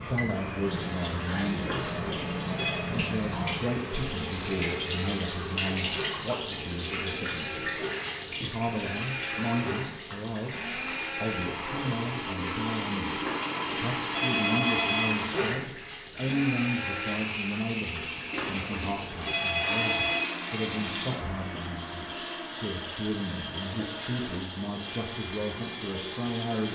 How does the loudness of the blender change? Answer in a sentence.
The loudness of the blender goes up, then down.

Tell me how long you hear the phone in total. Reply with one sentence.
The phone can be heard for 5 seconds in total.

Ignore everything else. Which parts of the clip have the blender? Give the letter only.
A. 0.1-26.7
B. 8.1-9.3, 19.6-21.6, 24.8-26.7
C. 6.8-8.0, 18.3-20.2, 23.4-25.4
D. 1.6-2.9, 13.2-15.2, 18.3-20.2
A.